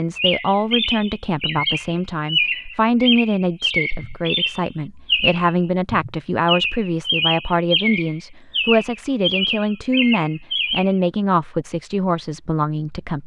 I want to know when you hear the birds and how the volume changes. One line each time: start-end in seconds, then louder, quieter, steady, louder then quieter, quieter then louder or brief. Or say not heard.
0.1-10.9 steady.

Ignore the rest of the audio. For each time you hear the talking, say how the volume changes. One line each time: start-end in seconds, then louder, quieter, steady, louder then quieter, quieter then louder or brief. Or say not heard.
0.0-13.2 steady.